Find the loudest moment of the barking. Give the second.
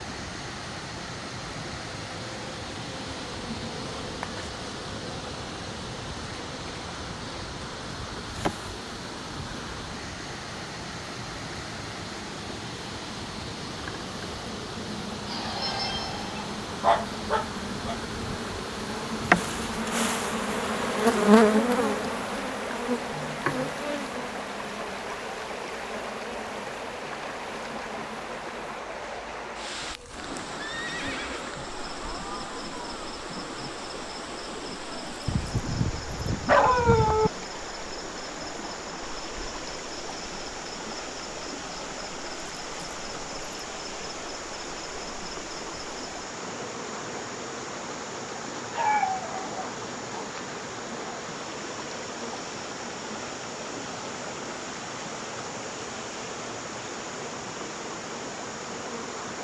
37 s.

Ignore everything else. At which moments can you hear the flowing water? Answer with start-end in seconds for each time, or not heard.
0.0-59.4.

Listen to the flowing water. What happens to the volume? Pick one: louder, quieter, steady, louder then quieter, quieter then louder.
steady.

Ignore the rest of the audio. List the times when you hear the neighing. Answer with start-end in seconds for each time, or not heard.
30.6-31.6.